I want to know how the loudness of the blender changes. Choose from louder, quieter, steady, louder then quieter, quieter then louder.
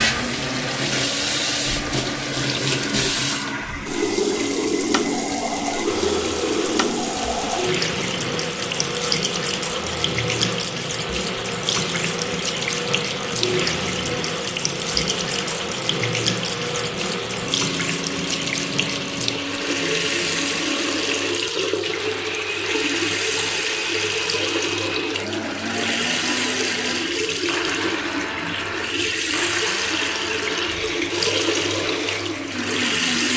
steady.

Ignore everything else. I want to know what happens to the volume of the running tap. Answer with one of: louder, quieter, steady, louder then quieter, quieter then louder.
steady.